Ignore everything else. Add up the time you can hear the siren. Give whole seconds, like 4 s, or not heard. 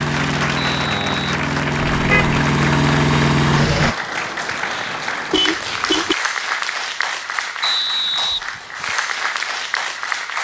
not heard.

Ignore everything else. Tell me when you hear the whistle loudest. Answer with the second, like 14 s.
8 s.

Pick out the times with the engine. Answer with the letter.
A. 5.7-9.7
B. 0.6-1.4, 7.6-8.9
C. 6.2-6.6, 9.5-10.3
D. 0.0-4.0
D.